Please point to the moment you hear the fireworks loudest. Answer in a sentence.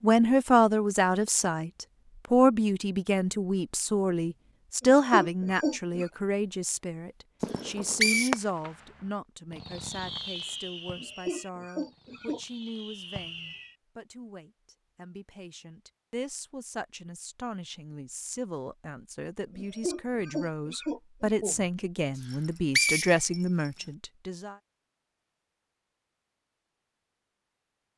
The loudest moment of the fireworks is at 8 seconds.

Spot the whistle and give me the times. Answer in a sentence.
The whistle can be heard from 7.5 to 8.3 s and from 22.3 to 23.9 s.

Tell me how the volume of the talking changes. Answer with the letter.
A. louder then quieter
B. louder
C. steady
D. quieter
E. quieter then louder
E.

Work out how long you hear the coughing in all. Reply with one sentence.
The coughing can be heard for 5 seconds in total.